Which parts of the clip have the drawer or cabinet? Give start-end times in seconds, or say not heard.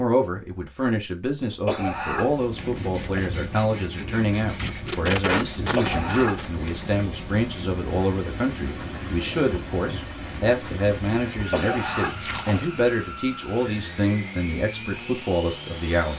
not heard.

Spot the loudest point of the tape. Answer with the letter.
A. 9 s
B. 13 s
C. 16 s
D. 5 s
D.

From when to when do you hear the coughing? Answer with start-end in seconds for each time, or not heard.
1.5-3.2, 5.6-6.9, 11.3-12.2.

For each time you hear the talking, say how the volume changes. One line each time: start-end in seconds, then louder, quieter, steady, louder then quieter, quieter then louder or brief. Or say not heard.
0.0-16.1 steady.